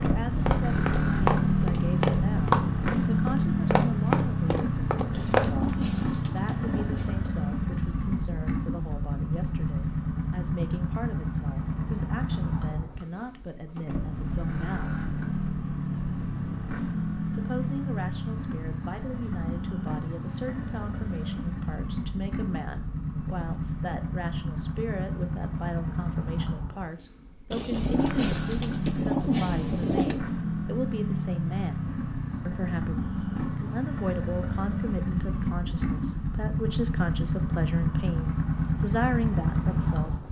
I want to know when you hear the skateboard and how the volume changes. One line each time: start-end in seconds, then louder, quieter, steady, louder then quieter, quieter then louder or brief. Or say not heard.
not heard.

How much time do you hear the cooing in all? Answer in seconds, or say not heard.
5 s.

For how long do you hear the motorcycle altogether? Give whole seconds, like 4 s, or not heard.
40 s.